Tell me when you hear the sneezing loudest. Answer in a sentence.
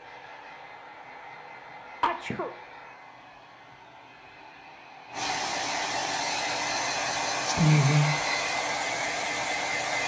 The volume of the sneezing peaks at 8 seconds.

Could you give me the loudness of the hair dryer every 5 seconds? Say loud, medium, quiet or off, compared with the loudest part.
quiet, loud.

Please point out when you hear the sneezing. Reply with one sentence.
The sneezing can be heard from 2.0 to 2.5 s and from 7.5 to 8.2 s.